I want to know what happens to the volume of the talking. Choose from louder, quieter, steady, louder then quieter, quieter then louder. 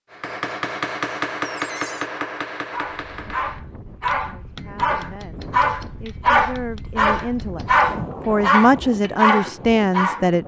louder.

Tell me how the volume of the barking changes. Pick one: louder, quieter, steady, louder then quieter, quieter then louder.
louder.